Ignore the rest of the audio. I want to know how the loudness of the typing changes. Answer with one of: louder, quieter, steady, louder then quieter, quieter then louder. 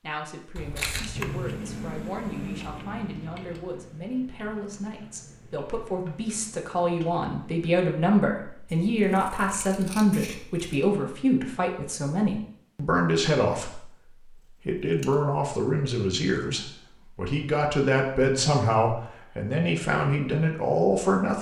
quieter.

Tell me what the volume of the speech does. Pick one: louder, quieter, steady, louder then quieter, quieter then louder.
louder.